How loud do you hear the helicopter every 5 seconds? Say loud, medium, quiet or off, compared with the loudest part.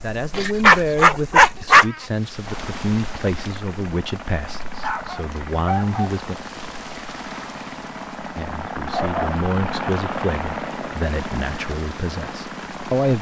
medium, loud, loud.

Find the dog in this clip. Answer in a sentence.
You can hear the dog from 0.3 to 1.9 s, from 4.8 to 6.2 s and from 8.9 to 9.9 s.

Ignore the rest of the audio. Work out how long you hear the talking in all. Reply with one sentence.
The talking can be heard for 11 seconds in total.